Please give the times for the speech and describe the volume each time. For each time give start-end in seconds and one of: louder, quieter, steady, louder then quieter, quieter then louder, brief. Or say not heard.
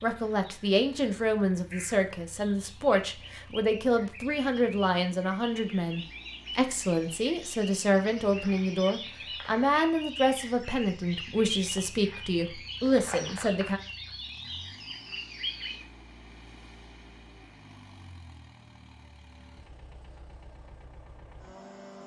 0.0-13.8 steady.